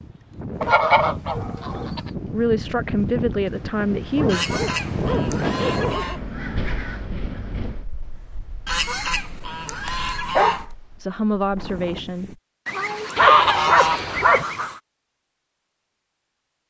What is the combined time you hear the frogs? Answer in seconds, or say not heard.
not heard.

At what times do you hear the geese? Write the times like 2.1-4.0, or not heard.
0.6-2.1, 4.2-6.2, 8.7-10.7, 12.7-14.8.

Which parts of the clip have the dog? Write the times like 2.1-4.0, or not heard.
0.6-1.9, 4.2-6.3, 9.8-10.7, 13.2-14.4.